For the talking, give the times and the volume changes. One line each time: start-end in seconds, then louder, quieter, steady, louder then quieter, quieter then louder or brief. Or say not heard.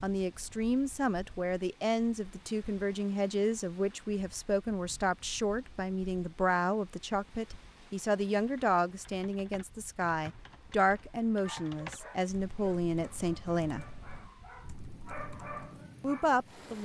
0.0-13.8 steady
16.0-16.8 brief.